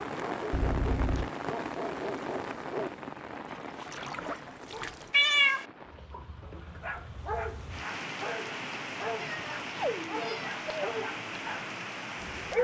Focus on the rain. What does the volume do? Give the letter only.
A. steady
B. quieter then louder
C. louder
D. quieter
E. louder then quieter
B.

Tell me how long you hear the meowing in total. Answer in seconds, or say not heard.
3 s.